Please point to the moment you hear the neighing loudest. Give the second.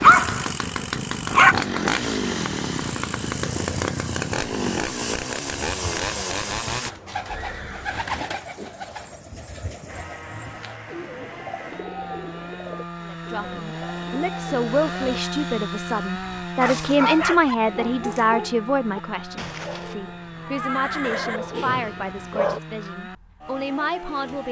21 s.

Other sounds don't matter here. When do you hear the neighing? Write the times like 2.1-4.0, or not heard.
6.8-8.1, 19.4-21.4.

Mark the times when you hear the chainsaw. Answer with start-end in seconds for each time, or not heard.
0.0-6.9, 9.8-24.4.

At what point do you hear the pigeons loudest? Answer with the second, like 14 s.
8 s.